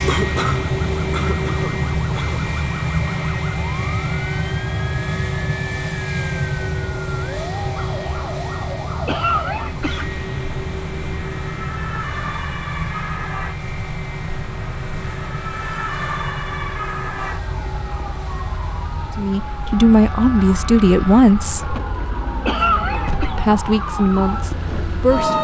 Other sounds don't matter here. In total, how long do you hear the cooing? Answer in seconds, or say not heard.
not heard.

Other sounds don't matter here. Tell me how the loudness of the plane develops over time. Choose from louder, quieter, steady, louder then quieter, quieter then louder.
quieter.